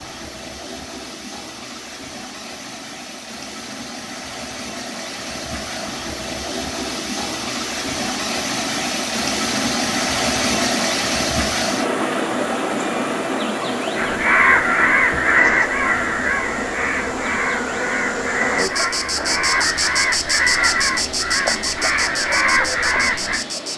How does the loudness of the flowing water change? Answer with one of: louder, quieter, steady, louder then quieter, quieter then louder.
louder then quieter.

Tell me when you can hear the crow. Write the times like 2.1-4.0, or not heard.
13.9-23.4.